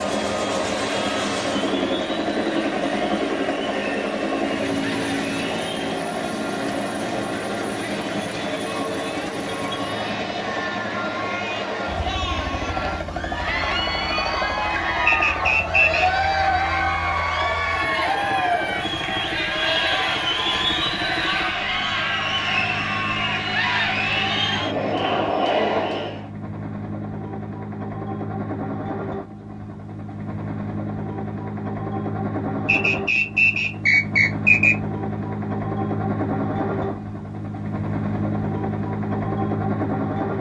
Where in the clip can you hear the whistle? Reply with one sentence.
You can hear the whistle from 15.1 to 16.2 s and from 32.6 to 34.8 s.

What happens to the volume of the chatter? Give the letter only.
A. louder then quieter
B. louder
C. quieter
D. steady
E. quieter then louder
B.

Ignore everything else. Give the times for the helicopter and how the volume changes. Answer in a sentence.
You can hear the helicopter from 0.0 to 40.3 s, getting quieter then louder.